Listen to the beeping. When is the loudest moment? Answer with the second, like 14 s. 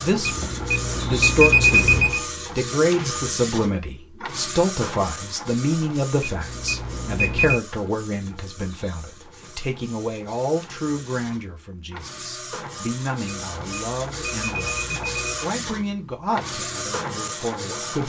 2 s.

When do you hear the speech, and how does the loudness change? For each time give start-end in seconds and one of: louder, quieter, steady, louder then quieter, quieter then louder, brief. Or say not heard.
0.0-18.0 quieter.